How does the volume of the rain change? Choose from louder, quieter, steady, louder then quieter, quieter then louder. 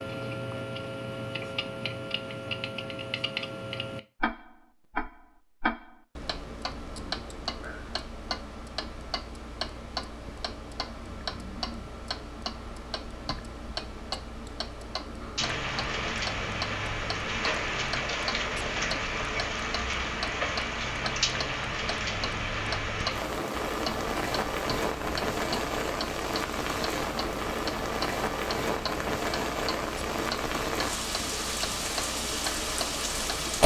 steady.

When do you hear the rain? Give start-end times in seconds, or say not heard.
15.3-33.6.